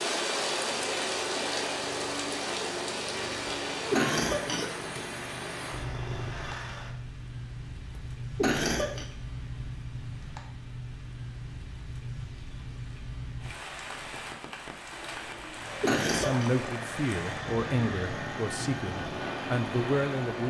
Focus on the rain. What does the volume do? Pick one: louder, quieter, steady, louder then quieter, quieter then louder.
quieter.